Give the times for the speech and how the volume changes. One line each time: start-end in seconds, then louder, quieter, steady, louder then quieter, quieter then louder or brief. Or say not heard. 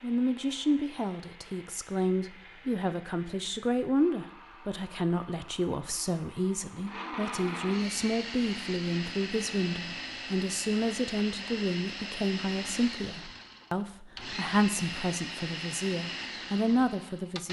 0.0-17.4 steady.